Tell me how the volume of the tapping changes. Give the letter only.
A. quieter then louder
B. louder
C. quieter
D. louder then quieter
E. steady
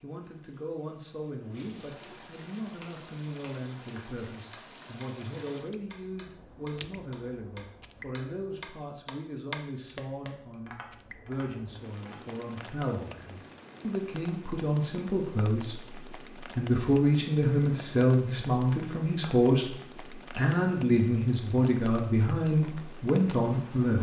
D.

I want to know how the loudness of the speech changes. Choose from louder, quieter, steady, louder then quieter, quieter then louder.
louder.